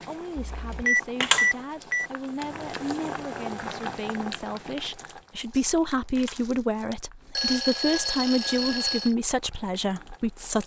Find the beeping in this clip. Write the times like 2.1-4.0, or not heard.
0.3-2.1, 7.3-9.1.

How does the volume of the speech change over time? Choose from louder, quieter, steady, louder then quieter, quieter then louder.
louder.